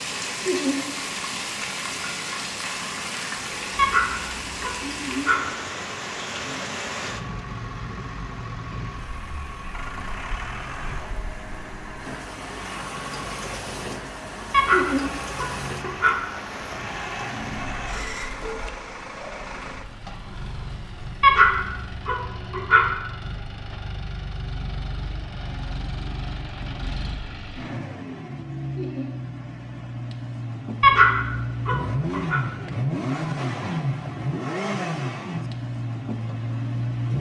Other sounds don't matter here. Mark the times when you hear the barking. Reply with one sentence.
The barking can be heard from 3.8 to 5.5 s, from 14.5 to 16.3 s, from 21.2 to 22.9 s and from 30.8 to 32.4 s.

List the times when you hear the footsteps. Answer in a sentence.
You can't hear the footsteps here.